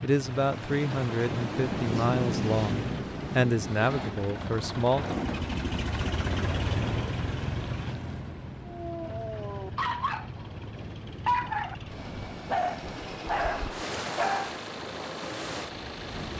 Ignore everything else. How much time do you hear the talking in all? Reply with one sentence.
You can hear the talking for 5 seconds altogether.